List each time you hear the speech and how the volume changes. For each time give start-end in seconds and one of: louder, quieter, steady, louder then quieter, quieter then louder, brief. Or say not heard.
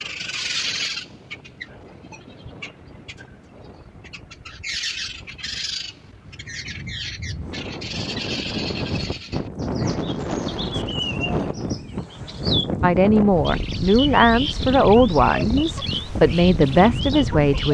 12.8-17.6 steady.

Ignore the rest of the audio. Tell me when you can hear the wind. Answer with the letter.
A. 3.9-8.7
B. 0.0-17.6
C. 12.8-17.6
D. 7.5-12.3
B.